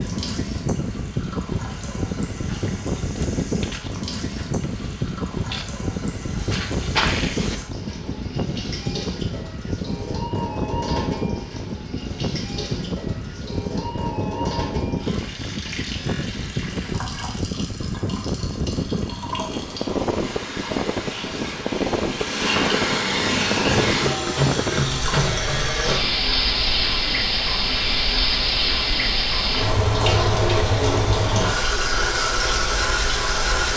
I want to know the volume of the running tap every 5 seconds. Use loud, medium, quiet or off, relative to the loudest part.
quiet, quiet, medium, quiet, loud, loud, loud.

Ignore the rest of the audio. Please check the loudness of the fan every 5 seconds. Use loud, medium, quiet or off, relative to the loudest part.
loud, loud, loud, loud, loud, medium, medium.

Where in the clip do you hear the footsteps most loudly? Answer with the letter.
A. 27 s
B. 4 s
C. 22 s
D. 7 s
D.